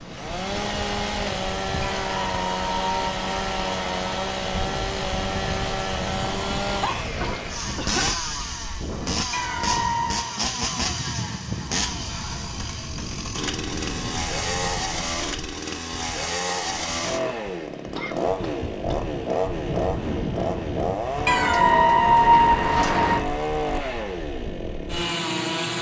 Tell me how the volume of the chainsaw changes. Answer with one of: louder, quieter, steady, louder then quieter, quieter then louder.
steady.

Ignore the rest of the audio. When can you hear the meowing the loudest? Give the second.
22 s.